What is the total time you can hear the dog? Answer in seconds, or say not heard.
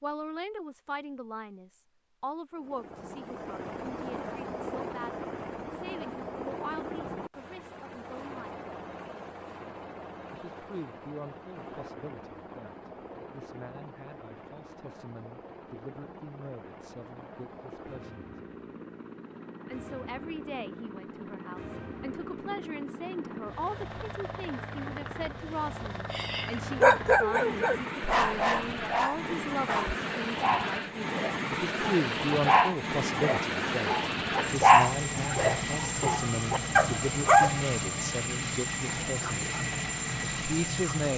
12 s.